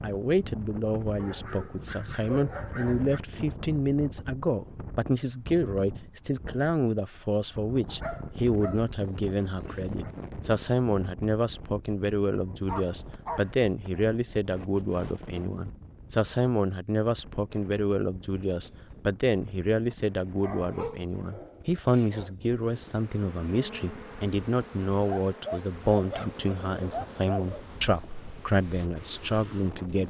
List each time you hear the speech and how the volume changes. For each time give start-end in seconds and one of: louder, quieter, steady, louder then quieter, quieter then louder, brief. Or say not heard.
0.0-30.0 steady.